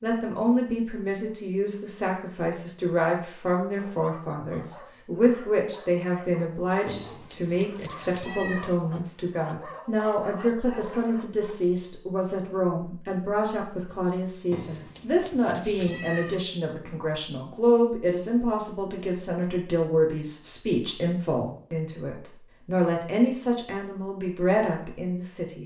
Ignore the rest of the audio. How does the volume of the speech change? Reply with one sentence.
The volume of the speech stays about the same.